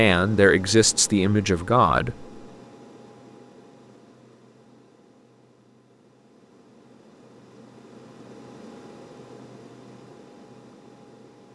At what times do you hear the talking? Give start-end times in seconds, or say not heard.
0.0-2.2.